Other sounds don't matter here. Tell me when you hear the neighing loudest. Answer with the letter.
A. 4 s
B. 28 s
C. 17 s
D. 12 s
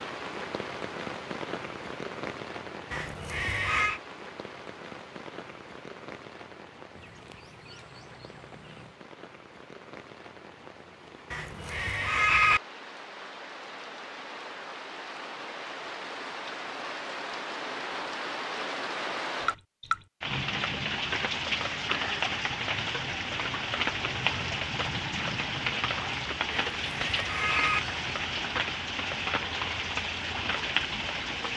D.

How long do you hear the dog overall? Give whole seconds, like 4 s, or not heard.
not heard.